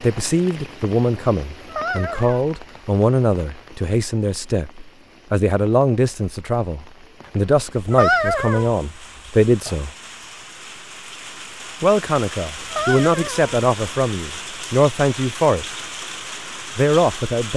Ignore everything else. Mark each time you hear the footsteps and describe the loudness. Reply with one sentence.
You can't hear the footsteps here.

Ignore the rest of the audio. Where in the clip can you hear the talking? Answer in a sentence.
The talking can be heard from 0.0 to 9.9 s, from 11.8 to 15.7 s and from 16.8 to 17.5 s.